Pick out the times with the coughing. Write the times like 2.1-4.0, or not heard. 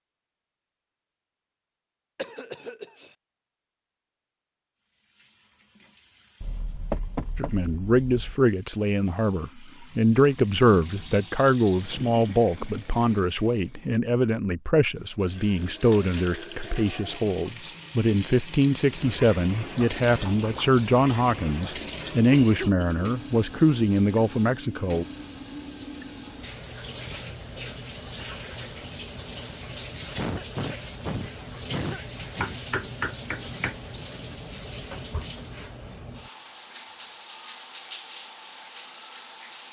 2.1-3.1, 22.3-23.1, 30.1-32.6.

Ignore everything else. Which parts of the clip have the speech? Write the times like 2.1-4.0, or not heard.
7.3-25.1.